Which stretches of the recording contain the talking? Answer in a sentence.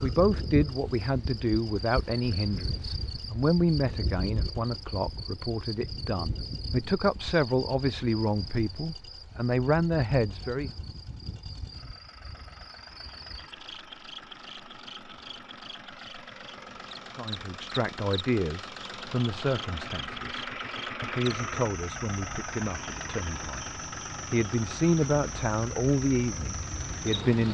You can hear the talking from 0.0 to 10.8 s and from 17.1 to 27.4 s.